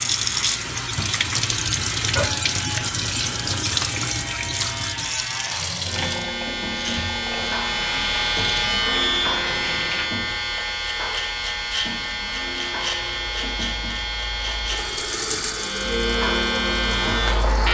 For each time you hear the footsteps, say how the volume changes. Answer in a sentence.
The footsteps can't be heard in this clip.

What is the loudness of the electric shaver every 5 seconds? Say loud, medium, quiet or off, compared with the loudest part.
medium, loud, loud, loud.